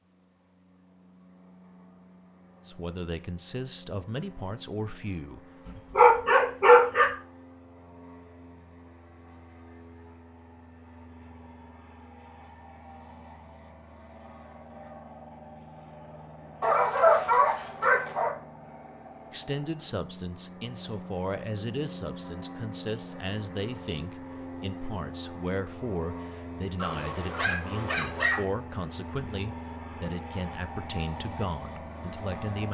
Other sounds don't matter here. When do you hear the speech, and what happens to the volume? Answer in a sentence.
You can hear the speech briefly from 2.6 to 5.5 s; and from 19.3 to 32.6 s, at a steady volume.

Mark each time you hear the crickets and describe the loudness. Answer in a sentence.
You can't hear the crickets here.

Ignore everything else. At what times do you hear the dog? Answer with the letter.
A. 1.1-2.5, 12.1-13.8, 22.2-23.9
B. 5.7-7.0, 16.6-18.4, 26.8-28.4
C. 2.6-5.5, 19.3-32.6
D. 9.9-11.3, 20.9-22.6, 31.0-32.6
B.